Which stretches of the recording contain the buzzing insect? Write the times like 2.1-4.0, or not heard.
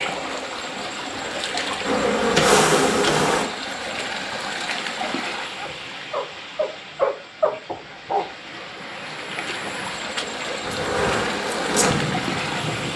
1.8-3.5, 10.6-12.9.